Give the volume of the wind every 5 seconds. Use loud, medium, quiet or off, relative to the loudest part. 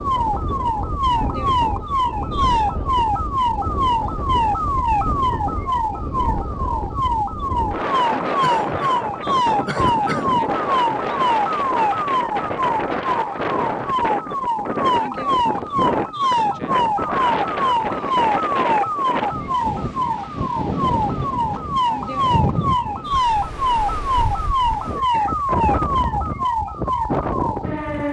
medium, loud, loud, loud, loud, loud.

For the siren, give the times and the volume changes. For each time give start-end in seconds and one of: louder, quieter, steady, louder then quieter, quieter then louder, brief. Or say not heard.
0.0-28.0 steady.